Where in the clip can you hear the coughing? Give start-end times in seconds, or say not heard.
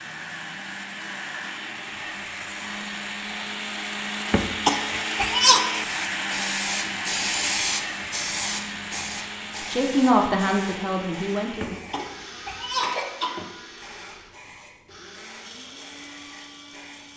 4.2-5.7, 11.6-13.5.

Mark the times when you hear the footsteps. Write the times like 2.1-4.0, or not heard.
not heard.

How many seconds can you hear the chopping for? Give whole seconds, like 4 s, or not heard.
not heard.